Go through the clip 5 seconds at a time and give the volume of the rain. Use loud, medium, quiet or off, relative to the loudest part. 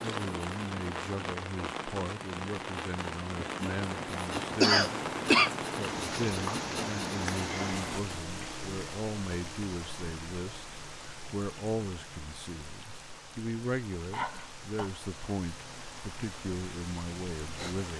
loud, loud, medium, medium.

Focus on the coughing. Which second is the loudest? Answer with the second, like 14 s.
5 s.